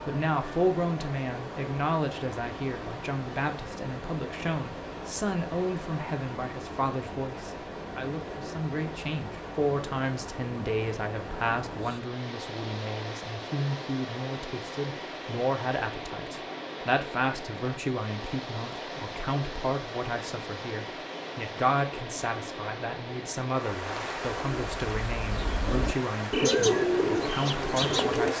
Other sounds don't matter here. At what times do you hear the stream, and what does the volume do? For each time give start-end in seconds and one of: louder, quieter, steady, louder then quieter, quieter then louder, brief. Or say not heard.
0.0-28.3 steady.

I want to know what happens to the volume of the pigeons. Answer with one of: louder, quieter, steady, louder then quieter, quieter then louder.
louder then quieter.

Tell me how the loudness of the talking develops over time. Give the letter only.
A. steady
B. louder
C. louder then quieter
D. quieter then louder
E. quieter
A.